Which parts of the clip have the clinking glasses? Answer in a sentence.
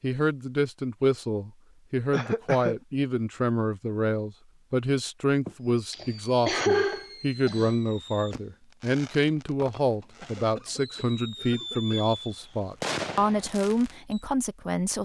You can't hear the clinking glasses here.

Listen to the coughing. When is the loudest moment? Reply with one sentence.
The loudest moment of the coughing is at 7 seconds.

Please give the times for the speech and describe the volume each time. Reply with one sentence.
The speech can be heard from 0.0 to 15.0 s, at a steady volume.